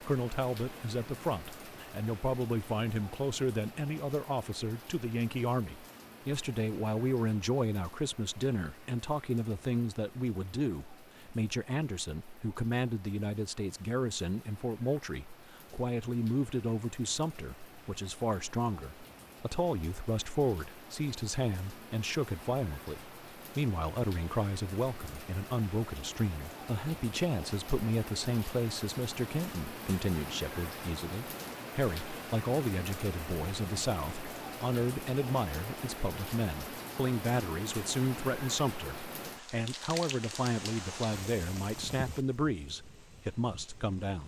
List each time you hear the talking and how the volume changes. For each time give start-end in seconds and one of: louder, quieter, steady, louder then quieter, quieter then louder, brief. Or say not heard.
0.0-44.2 steady.